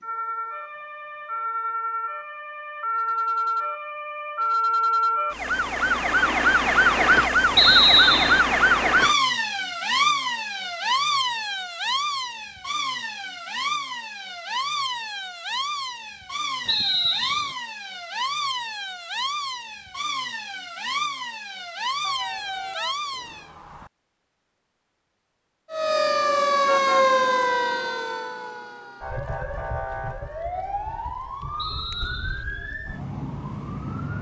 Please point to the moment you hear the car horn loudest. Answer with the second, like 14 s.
23 s.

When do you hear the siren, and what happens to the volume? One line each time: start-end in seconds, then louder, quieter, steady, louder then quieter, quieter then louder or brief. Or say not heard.
0.0-23.5 louder then quieter
25.7-34.1 quieter.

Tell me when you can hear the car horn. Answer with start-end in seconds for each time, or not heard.
22.0-23.9.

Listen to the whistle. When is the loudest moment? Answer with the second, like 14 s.
8 s.